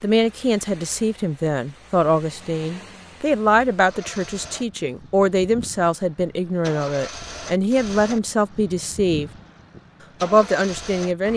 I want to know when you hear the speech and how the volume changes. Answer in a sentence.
You can hear the speech from 0.0 to 9.3 s, at a steady volume; and briefly from 10.2 to 11.3 s.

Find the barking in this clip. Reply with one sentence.
The barking can't be heard in this clip.